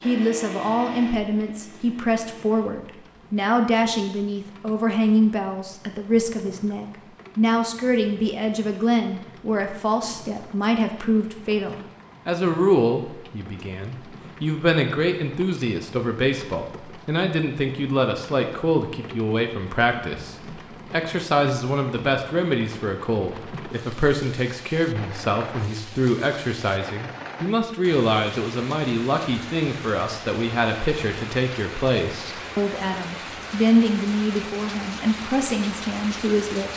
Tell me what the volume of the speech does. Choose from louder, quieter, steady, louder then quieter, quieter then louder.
steady.